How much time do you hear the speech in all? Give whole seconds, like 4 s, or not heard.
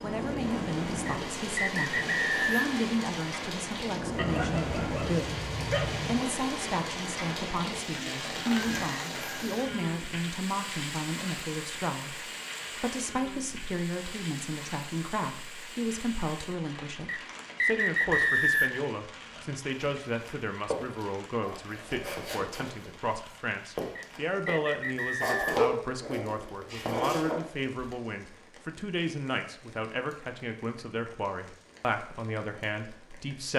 33 s.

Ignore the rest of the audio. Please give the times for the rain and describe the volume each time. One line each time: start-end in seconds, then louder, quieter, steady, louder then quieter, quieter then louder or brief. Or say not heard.
0.0-33.5 quieter.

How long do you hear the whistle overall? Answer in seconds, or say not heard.
5 s.